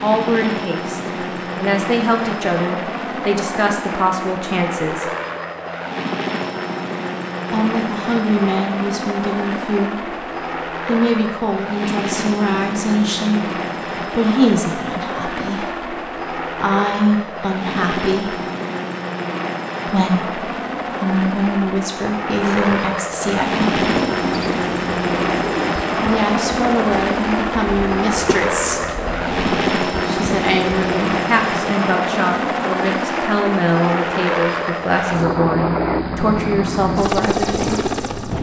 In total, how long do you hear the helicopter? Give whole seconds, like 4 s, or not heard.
38 s.